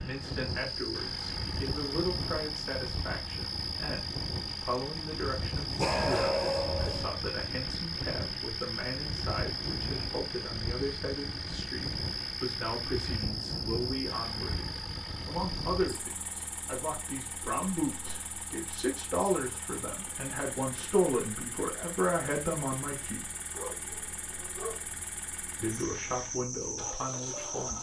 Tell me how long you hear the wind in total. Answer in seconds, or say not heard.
16 s.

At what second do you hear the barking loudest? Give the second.
6 s.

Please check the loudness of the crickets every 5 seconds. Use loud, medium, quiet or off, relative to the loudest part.
loud, loud, loud, medium, medium, loud.